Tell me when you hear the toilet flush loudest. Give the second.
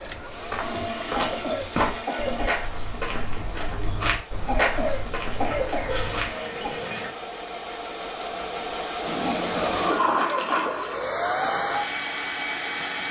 10 s.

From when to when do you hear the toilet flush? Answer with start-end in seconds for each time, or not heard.
0.6-2.5, 5.2-7.2, 9.0-11.1.